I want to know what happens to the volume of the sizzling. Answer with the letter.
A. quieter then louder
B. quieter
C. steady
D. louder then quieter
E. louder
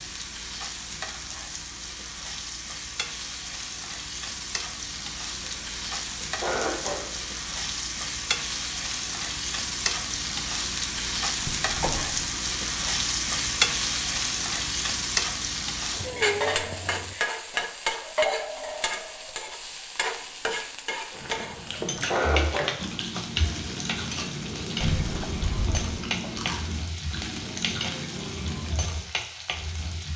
D.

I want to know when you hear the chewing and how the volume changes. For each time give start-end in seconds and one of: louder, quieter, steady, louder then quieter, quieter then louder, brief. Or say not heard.
21.1-28.8 steady.